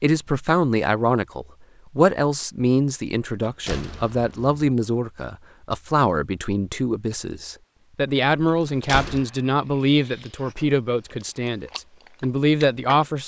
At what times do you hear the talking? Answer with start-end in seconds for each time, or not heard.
0.0-13.2.